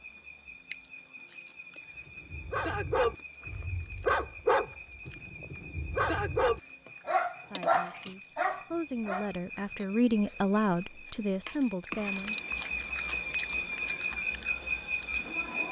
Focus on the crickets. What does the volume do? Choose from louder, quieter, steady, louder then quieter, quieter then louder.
louder.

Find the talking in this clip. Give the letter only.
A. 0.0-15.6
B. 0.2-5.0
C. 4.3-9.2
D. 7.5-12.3
D.